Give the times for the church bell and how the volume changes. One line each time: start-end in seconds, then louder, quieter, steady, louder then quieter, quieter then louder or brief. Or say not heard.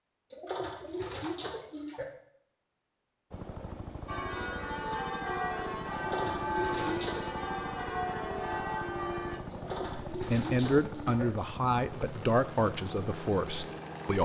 4.0-9.4 steady.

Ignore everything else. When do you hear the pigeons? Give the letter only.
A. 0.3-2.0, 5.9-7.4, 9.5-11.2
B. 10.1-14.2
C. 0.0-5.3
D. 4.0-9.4
A.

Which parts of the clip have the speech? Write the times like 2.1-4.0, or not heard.
10.1-14.2.